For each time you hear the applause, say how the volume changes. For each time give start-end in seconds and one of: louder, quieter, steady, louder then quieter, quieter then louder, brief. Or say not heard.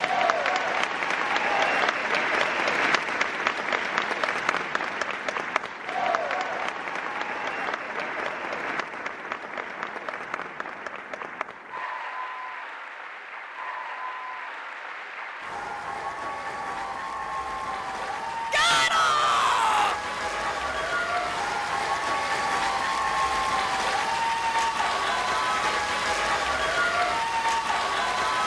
0.0-28.4 quieter then louder.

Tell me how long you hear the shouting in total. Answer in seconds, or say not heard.
2 s.